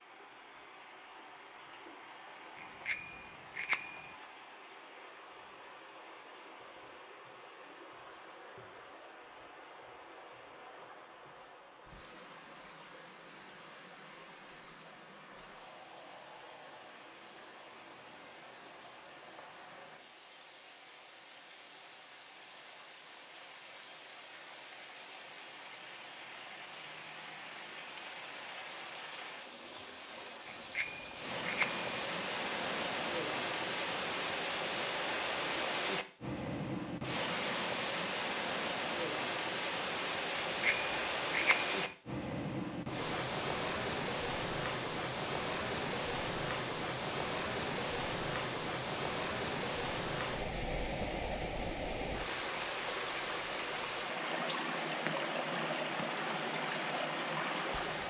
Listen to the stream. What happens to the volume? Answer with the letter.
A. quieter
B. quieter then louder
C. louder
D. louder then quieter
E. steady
C.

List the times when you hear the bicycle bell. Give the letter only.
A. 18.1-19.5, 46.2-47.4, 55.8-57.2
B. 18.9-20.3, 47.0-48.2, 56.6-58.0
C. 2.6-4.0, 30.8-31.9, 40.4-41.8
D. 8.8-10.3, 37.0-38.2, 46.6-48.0
C.